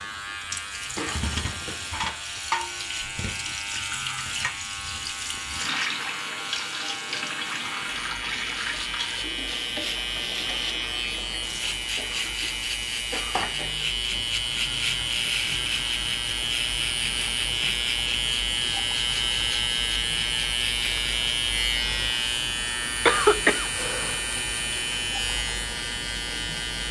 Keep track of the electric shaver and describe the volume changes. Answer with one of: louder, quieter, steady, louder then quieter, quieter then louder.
louder.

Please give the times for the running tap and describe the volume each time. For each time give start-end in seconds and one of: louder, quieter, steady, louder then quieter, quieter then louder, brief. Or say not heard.
0.0-26.8 quieter.